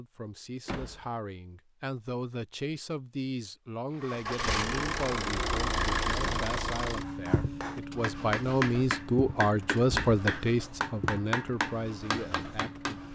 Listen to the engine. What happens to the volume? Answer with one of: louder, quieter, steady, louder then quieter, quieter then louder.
quieter.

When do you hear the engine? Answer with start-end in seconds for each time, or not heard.
4.0-13.1.